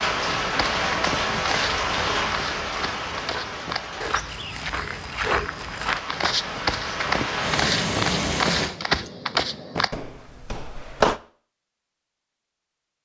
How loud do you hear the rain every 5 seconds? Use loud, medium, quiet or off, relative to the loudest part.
loud, loud, off.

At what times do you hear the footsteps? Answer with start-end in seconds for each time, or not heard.
0.5-11.2.